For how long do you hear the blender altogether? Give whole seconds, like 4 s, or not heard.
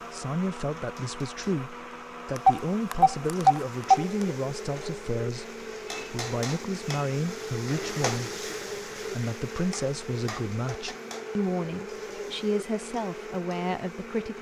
14 s.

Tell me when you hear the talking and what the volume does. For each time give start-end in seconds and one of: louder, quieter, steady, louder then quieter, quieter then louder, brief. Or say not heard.
0.1-14.3 steady.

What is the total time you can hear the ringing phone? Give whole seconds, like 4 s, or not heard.
2 s.